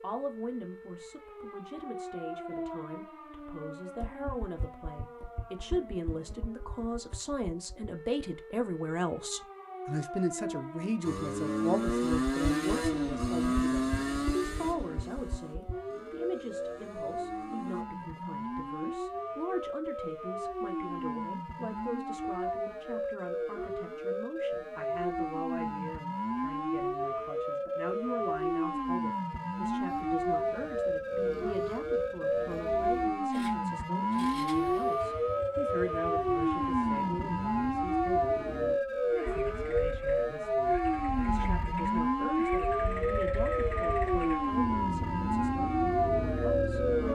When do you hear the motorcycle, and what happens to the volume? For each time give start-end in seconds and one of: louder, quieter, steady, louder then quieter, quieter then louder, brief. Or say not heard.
11.0-17.9 quieter
29.9-47.0 louder.